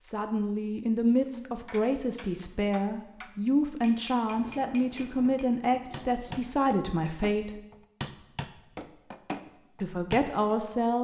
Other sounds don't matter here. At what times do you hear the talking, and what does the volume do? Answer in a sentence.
You can hear the talking from 0.0 to 7.6 s, at a steady volume; and briefly from 9.8 to 10.9 s.